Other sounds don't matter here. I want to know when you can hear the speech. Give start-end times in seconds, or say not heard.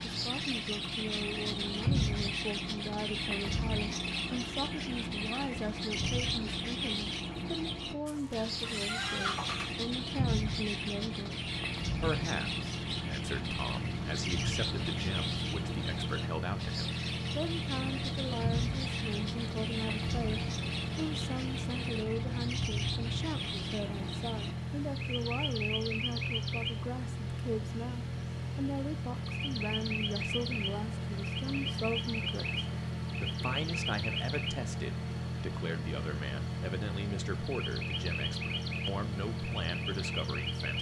0.1-11.3, 11.9-40.7.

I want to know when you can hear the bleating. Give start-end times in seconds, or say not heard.
8.1-9.8.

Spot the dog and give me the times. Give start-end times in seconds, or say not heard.
not heard.